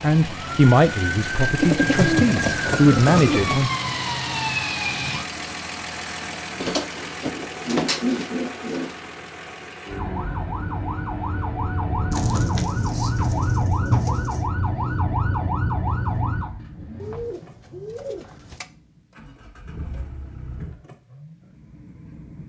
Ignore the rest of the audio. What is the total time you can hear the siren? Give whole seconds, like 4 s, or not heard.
12 s.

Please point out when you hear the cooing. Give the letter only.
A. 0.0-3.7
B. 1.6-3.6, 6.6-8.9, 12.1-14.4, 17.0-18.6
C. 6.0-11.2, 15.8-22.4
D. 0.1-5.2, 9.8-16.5
B.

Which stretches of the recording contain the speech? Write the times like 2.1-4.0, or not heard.
0.0-3.7.